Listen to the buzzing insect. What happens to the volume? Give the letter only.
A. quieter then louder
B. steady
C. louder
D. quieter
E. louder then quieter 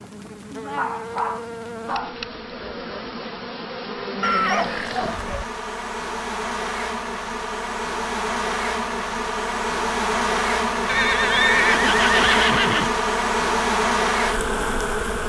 C.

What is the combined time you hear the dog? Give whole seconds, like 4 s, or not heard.
2 s.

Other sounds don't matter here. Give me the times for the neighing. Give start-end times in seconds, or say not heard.
4.2-5.5, 10.8-12.9.